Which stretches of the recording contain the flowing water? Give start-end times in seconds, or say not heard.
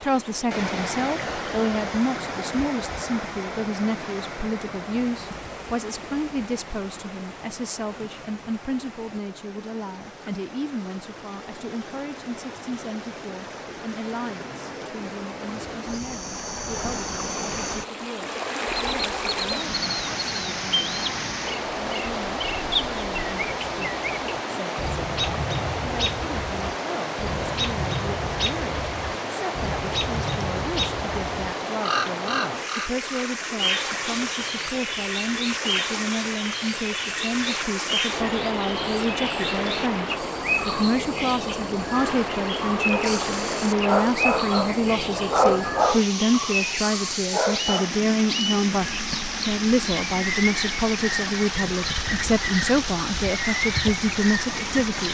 0.0-55.0.